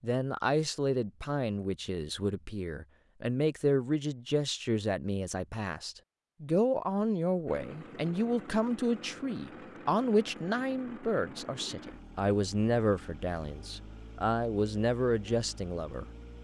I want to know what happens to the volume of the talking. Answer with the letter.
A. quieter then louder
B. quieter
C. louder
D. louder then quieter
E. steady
E.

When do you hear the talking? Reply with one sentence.
You can hear the talking from 0.0 to 16.1 s.